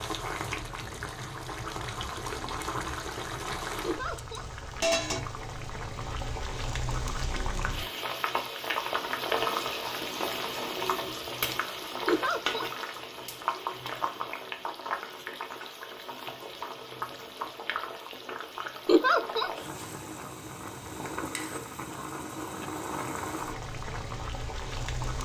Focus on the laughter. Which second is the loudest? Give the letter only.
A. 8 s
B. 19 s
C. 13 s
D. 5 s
B.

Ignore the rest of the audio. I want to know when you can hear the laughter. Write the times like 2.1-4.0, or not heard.
3.8-4.5, 12.1-12.7, 18.9-19.5.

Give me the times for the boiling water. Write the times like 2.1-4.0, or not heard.
0.0-25.2.